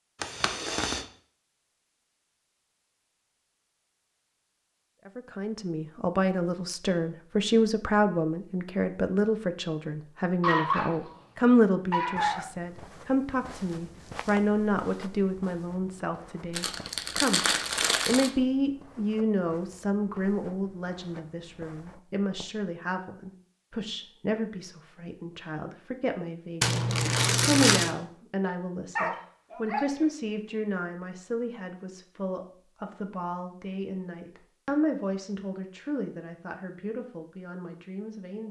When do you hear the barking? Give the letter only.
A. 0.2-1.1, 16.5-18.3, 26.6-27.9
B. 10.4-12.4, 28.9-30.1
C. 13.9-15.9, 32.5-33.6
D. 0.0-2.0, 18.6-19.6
B.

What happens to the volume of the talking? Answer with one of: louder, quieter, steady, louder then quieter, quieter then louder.
quieter.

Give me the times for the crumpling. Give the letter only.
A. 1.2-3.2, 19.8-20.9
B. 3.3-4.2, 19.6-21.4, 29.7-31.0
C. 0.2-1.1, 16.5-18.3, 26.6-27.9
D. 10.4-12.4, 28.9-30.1
C.